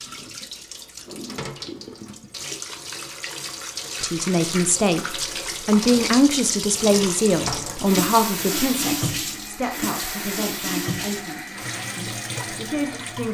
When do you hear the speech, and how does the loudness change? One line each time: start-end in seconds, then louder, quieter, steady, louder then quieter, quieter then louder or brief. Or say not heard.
4.0-13.2 quieter.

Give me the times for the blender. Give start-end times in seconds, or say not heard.
9.1-13.2.